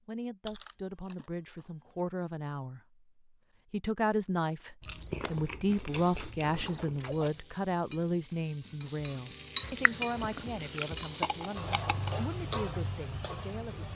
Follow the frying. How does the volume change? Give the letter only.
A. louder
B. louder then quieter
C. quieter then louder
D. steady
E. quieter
B.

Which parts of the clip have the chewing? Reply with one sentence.
You can hear the chewing from 0.5 to 1.6 s, from 4.8 to 7.4 s and from 9.8 to 12.1 s.